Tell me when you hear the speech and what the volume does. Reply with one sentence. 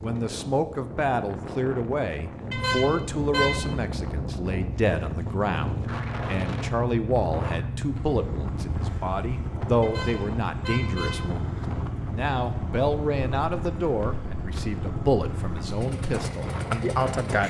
You can hear the speech from 0.0 to 17.4 s, at a steady volume.